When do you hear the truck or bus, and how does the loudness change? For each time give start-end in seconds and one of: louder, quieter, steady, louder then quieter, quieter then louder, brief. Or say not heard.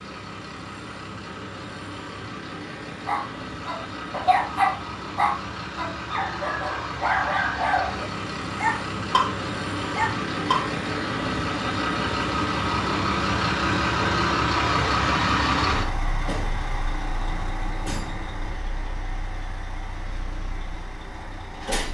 0.0-21.8 louder then quieter.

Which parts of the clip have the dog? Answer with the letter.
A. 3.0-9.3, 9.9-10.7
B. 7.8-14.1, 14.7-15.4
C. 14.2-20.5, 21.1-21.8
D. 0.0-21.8
A.